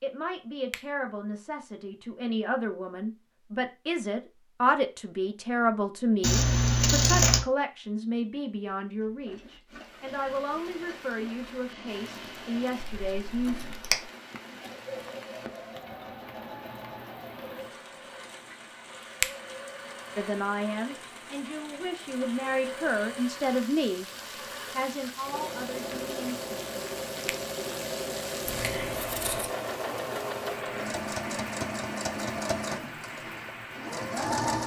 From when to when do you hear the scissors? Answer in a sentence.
You can hear the scissors from 6.2 to 7.5 s, from 12.8 to 14.1 s and from 28.4 to 29.5 s.